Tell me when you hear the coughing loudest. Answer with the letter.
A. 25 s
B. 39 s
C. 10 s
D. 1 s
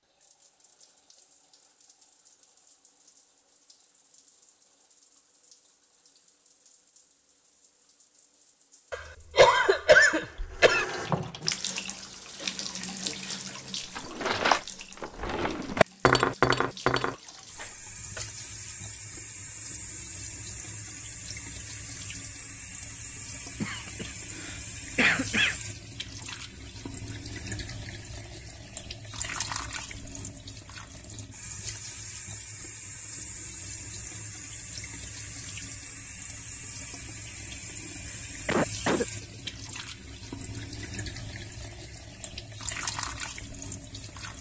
C.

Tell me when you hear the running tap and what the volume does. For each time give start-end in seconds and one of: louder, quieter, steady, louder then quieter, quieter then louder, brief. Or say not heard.
0.0-44.3 louder.